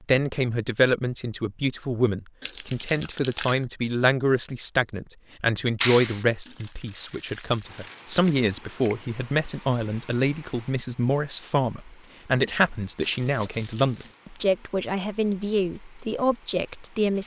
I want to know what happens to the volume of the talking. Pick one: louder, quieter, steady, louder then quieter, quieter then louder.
steady.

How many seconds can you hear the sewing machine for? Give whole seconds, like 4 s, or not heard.
not heard.